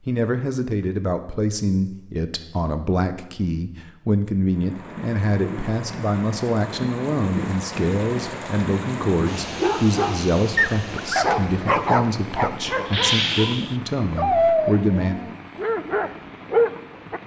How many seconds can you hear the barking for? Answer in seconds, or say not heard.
8 s.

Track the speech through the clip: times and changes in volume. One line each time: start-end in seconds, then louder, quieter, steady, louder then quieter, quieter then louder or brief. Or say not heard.
0.1-15.2 steady.